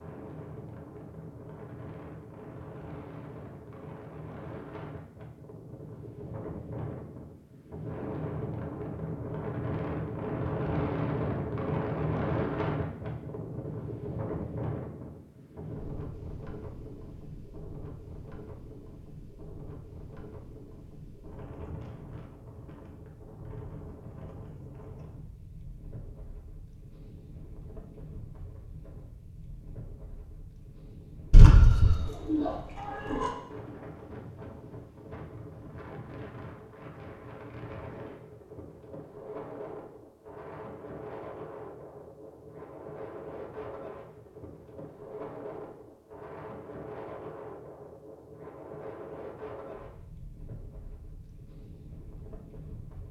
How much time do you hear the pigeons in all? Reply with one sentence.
You can hear the pigeons for 2 seconds altogether.